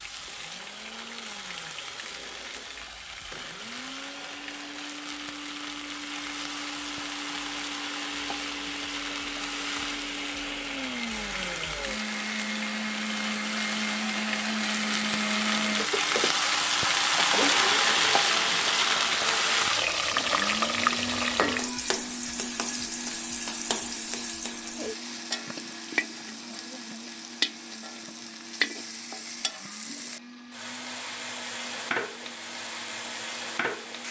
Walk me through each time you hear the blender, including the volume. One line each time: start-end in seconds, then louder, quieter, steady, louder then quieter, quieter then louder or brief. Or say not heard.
0.0-34.0 louder then quieter.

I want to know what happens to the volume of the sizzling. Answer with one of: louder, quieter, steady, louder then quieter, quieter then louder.
louder then quieter.